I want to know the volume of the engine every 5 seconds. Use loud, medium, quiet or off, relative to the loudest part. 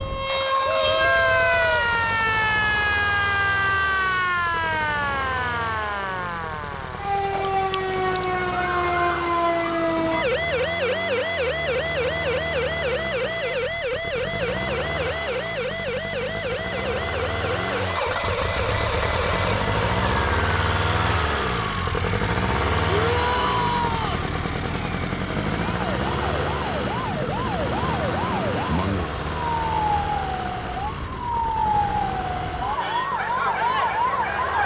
medium, medium, medium, loud, loud, loud, medium.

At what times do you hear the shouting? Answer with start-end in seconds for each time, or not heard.
0.6-1.9, 22.9-24.2.